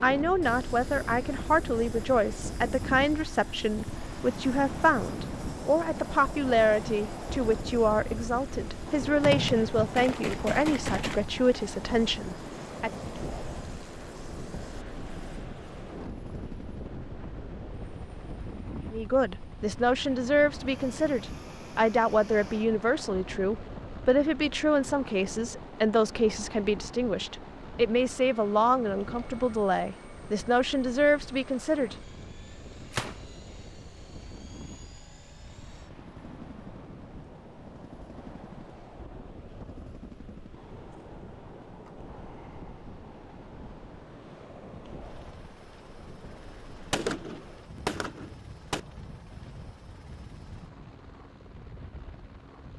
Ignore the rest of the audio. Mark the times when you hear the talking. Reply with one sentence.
You can hear the talking from 0.0 to 12.9 s and from 18.9 to 31.9 s.